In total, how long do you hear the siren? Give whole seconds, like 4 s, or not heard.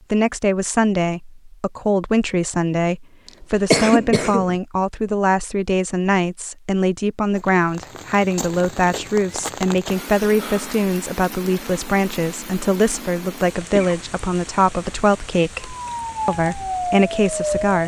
2 s.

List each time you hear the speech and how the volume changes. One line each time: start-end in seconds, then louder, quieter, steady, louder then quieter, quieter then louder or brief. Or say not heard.
0.1-17.8 steady.